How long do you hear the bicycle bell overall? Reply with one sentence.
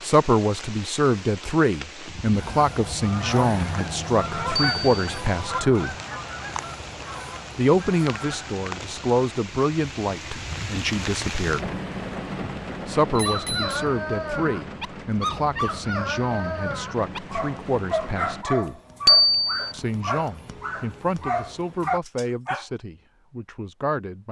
The bicycle bell can be heard for 2 seconds in total.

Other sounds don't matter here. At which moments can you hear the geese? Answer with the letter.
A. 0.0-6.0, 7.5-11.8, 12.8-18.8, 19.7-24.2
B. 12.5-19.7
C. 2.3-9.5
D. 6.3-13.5
C.